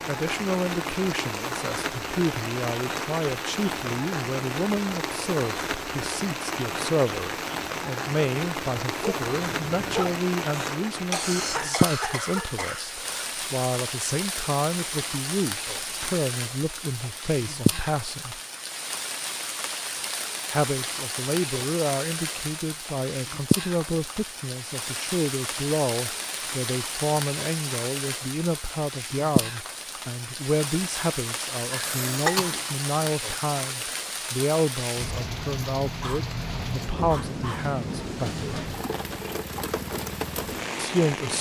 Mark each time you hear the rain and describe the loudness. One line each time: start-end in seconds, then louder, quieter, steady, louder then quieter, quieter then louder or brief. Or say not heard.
0.0-41.3 steady.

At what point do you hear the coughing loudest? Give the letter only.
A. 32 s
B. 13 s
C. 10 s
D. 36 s
A.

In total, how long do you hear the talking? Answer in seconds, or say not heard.
37 s.